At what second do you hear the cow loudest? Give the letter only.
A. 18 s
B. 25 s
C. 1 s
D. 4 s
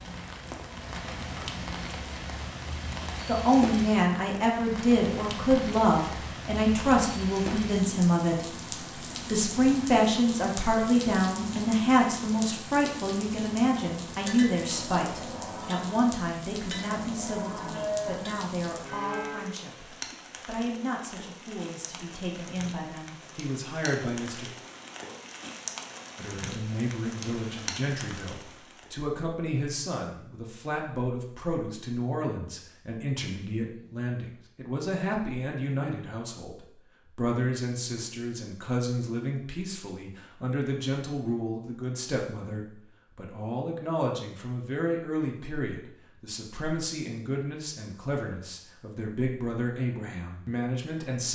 A.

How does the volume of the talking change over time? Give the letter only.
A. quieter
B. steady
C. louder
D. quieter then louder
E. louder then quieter
A.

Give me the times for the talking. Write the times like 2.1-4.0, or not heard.
3.2-24.4, 26.1-51.3.